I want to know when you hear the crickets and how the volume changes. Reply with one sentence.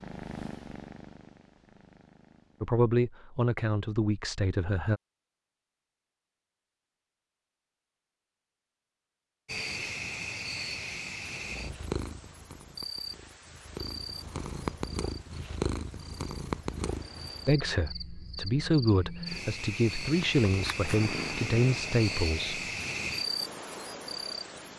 The crickets can be heard from 9.4 to 24.7 s, getting quieter then louder.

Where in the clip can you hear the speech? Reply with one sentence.
You can hear the speech from 2.6 to 5.0 s and from 17.4 to 22.6 s.